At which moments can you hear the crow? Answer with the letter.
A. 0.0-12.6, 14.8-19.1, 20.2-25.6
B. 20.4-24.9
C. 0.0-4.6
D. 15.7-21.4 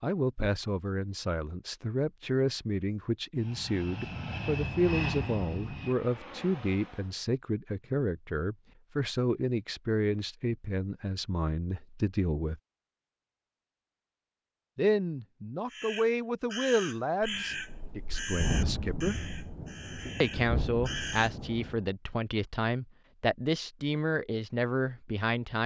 D.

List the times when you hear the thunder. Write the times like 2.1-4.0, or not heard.
17.2-21.8.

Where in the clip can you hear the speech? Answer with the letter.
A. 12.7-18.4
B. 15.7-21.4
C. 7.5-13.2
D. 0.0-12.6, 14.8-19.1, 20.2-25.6
D.